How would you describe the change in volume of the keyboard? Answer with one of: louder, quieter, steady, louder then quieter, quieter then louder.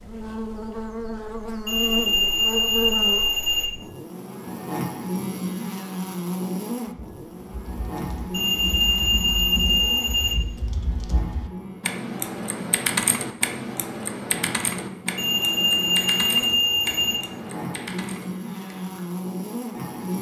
louder then quieter.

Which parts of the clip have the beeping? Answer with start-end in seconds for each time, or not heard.
1.6-3.7, 8.3-10.3, 15.2-17.2.